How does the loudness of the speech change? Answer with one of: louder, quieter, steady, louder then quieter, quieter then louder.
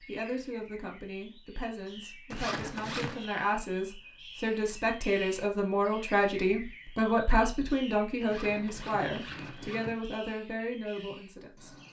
louder then quieter.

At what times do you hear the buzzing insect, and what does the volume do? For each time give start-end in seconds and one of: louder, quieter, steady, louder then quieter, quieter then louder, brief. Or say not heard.
not heard.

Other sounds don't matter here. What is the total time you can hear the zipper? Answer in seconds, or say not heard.
3 s.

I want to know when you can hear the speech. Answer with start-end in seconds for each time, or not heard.
0.1-11.7.